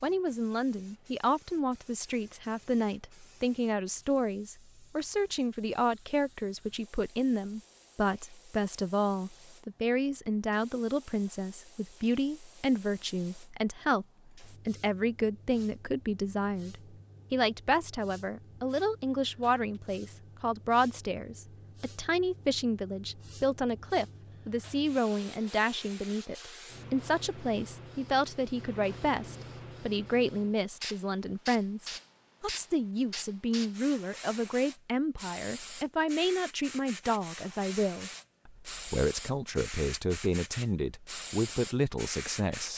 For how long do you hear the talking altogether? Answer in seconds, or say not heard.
43 s.